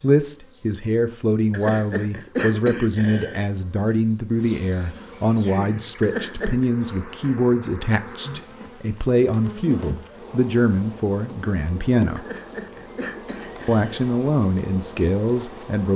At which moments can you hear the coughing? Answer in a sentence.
You can hear the coughing from 1.5 to 3.5 s, from 6.0 to 6.7 s and from 12.2 to 14.1 s.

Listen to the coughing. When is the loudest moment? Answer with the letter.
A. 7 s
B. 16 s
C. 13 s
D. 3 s
D.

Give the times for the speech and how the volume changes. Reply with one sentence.
The speech can be heard from 0.0 to 12.3 s, at a steady volume; and briefly from 13.7 to 15.9 s.